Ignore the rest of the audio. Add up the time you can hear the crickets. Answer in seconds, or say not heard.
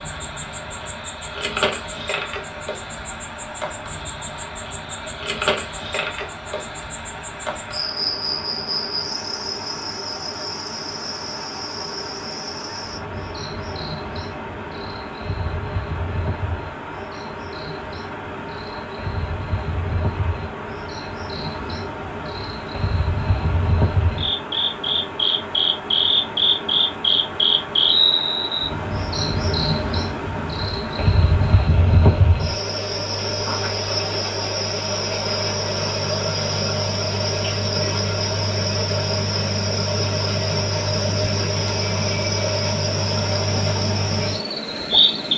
45 s.